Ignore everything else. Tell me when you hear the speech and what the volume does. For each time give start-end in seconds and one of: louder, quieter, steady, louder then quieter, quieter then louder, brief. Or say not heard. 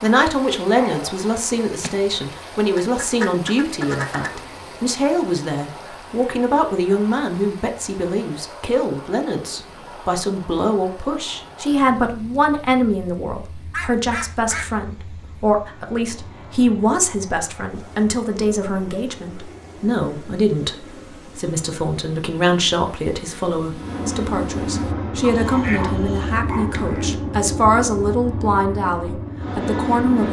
0.0-30.2 steady.